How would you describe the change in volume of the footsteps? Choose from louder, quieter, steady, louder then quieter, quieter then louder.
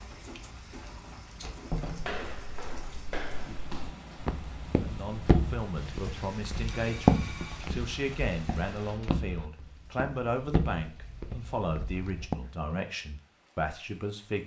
louder then quieter.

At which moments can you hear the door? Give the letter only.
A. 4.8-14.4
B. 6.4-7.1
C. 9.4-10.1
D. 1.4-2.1
D.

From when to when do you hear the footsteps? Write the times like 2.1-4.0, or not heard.
1.9-12.3.